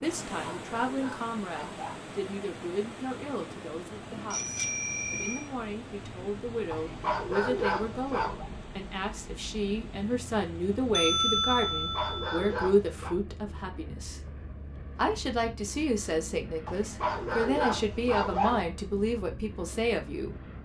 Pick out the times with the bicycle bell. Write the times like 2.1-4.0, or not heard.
4.3-5.5, 10.9-12.6.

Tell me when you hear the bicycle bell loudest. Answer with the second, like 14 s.
11 s.